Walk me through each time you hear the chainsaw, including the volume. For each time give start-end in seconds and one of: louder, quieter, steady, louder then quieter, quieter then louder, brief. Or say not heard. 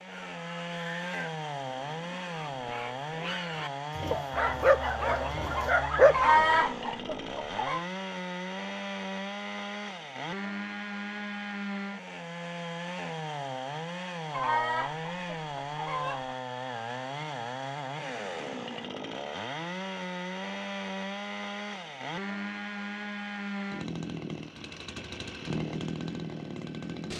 0.0-27.1 steady.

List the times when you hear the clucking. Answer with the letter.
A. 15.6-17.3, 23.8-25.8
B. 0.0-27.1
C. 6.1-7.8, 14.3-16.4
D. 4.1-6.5
C.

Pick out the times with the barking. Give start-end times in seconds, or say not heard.
4.1-6.5.